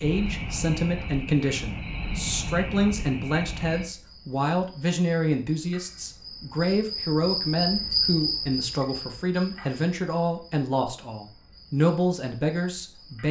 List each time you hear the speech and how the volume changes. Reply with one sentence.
The speech can be heard from 0.0 to 13.2 s, at a steady volume.